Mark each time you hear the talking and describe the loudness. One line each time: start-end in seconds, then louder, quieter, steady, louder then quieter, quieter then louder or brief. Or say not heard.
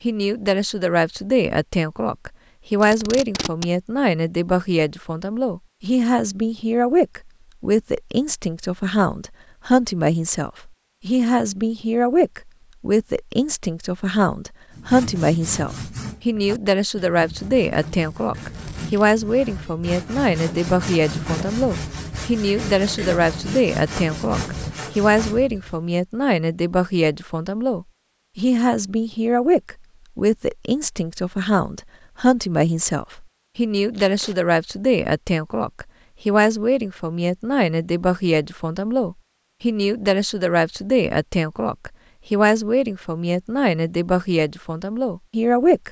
0.0-45.8 steady.